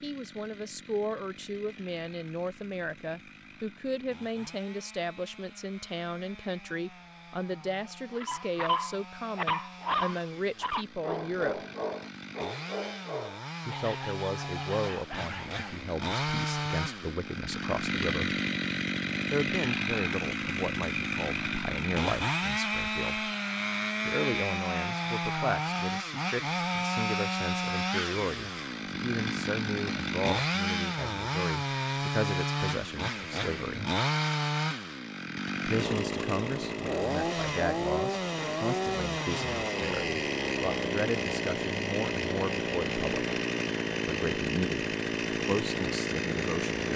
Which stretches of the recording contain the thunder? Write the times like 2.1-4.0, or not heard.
not heard.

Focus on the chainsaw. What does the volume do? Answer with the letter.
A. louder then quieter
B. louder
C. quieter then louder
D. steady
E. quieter
B.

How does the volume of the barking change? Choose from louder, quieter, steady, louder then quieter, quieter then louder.
quieter.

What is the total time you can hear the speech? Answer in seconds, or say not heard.
41 s.